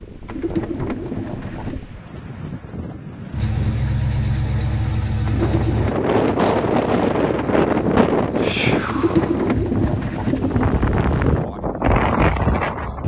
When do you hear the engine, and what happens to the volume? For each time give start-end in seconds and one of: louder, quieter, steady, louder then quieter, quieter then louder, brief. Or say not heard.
3.3-9.8 quieter.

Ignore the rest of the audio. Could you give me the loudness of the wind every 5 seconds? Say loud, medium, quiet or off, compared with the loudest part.
quiet, loud, loud.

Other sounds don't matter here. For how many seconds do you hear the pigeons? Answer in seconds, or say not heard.
5 s.